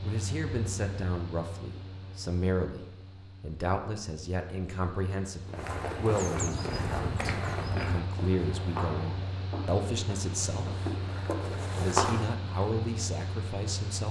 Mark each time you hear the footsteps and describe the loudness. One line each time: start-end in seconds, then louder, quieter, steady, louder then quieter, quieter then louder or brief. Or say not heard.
5.5-12.3 quieter then louder.